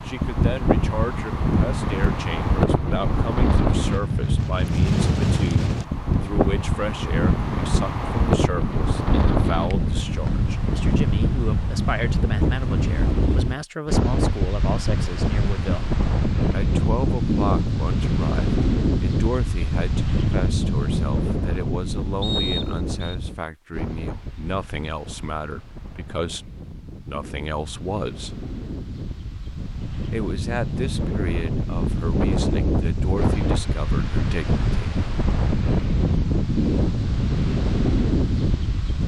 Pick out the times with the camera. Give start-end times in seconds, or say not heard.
not heard.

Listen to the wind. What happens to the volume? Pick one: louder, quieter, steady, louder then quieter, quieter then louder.
quieter then louder.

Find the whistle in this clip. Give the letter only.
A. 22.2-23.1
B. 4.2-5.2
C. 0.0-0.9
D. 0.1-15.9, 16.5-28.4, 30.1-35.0
A.